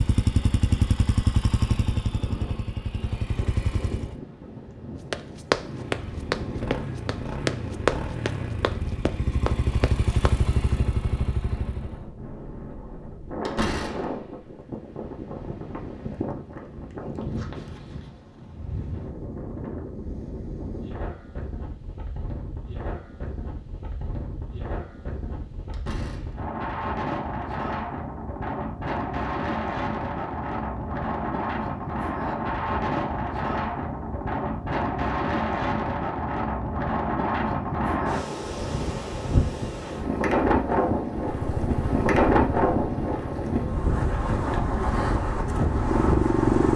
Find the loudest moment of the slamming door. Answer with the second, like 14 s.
14 s.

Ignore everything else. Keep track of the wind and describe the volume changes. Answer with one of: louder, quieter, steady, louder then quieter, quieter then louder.
louder.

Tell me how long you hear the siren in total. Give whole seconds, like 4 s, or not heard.
not heard.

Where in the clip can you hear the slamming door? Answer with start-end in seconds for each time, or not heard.
13.3-14.6, 25.6-26.4.